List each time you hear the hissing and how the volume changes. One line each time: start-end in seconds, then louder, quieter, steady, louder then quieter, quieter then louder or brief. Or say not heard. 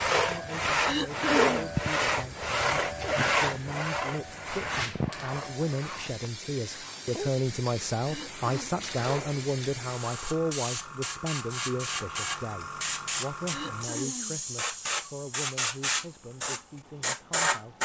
0.2-17.8 louder.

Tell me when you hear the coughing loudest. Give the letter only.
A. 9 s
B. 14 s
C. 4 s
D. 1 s
D.